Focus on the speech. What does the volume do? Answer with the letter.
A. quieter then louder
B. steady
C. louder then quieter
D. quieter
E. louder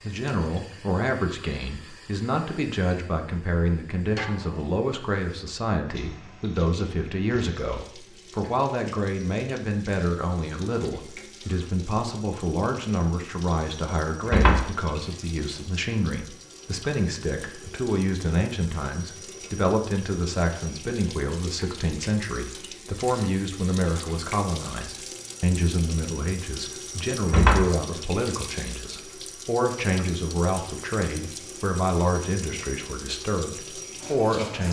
B.